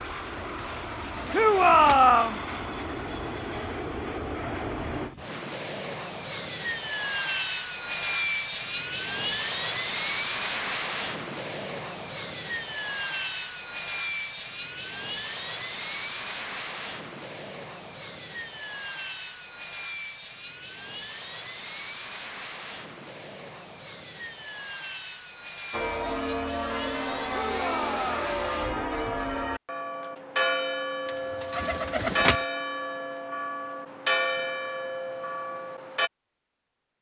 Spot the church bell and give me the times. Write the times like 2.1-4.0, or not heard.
25.7-36.1.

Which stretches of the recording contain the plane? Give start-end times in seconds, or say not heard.
0.0-29.4.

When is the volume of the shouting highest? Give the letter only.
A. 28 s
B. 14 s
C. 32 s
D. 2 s
D.